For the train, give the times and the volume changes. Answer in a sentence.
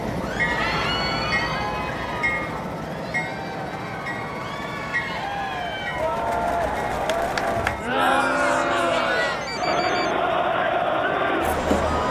The train can be heard from 0.0 to 12.0 s, getting quieter.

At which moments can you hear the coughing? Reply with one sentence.
You can't hear the coughing here.